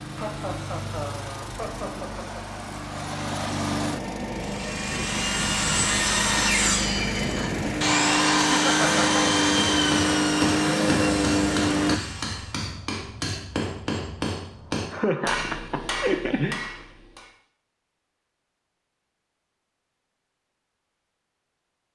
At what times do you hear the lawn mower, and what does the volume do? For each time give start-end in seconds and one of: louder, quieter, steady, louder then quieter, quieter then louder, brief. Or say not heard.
0.0-12.0 louder.